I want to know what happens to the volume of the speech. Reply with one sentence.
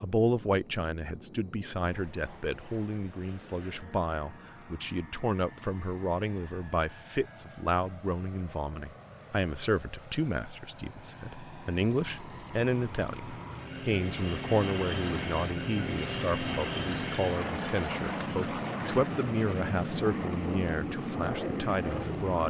The loudness of the speech stays about the same.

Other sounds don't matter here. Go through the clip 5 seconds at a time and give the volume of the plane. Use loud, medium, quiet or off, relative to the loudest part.
quiet, quiet, medium, loud, loud.